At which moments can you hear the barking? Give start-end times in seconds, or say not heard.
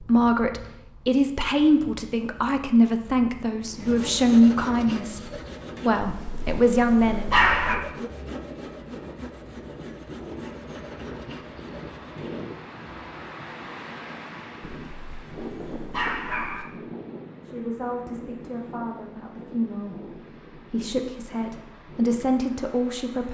6.0-7.8, 14.8-16.6.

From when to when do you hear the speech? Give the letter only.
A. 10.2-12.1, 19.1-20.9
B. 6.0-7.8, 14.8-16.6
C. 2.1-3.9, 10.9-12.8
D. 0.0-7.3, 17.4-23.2
D.